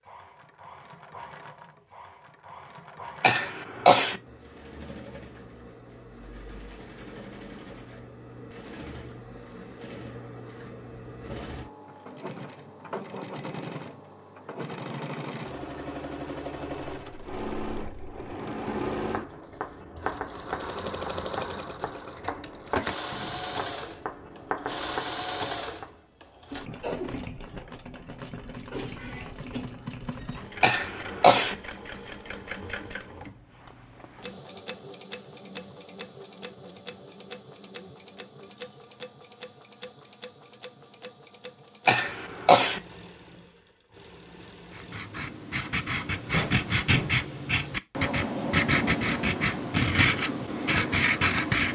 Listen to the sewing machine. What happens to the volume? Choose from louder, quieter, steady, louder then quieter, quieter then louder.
louder then quieter.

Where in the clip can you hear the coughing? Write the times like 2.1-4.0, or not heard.
3.2-4.2, 30.6-31.6, 41.9-42.8.